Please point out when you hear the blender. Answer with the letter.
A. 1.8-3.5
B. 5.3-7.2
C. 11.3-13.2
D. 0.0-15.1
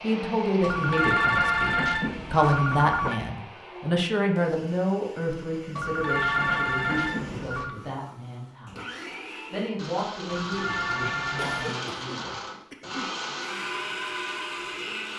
D.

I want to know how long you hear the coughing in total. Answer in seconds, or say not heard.
2 s.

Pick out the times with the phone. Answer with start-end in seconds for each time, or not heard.
0.6-3.2, 5.8-7.8, 10.2-11.8.